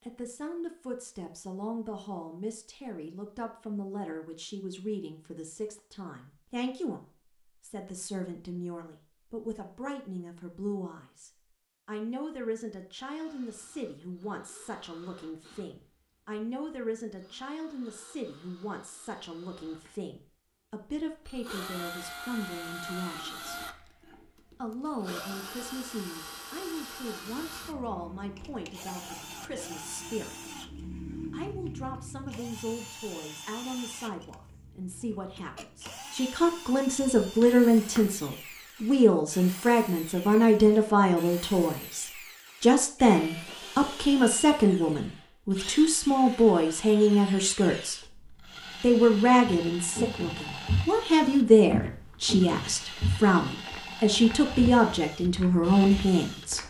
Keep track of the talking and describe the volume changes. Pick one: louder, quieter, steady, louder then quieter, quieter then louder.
louder.